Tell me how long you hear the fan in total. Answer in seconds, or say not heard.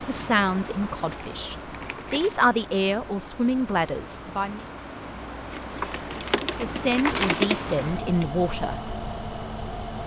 10 s.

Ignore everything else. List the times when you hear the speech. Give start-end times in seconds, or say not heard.
0.1-4.7, 6.5-8.8.